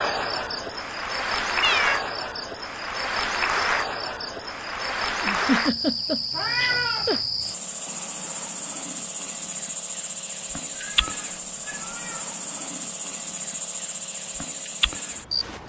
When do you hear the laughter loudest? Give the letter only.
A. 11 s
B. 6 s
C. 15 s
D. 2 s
B.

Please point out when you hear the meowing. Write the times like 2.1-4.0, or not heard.
1.6-2.0, 6.3-7.2, 10.7-12.2.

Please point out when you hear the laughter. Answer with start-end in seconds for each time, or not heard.
5.2-7.2.